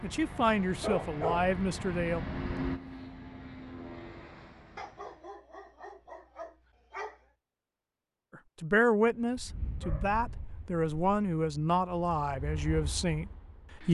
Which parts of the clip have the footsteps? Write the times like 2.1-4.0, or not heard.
not heard.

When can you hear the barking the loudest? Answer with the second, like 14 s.
1 s.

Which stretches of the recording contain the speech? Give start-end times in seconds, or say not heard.
0.0-2.2, 8.6-13.8.